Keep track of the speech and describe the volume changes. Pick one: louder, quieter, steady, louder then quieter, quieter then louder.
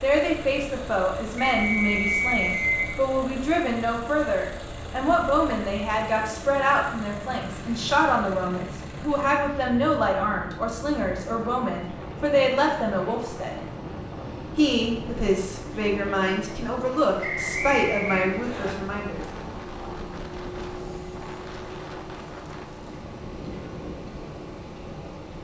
steady.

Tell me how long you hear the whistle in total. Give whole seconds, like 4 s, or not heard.
3 s.